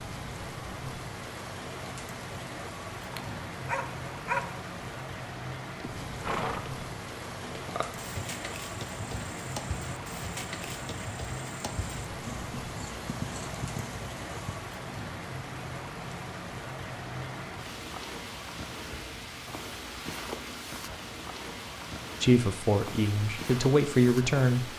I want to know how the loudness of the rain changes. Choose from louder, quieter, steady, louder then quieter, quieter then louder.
steady.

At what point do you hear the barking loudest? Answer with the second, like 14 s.
4 s.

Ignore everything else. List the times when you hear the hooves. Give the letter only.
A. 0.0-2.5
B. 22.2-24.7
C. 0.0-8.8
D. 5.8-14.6
D.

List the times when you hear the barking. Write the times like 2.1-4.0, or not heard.
3.1-4.7.